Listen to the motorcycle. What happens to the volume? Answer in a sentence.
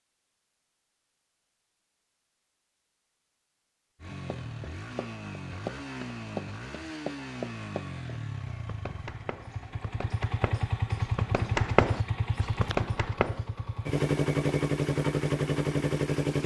The volume of the motorcycle goes up.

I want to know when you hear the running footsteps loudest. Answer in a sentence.
The volume of the running footsteps peaks at 12 seconds.